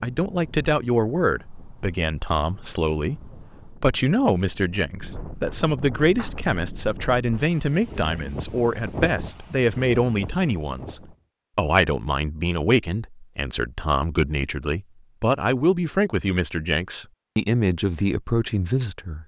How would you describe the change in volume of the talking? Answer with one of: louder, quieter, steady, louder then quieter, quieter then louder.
steady.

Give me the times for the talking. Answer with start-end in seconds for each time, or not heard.
0.0-19.2.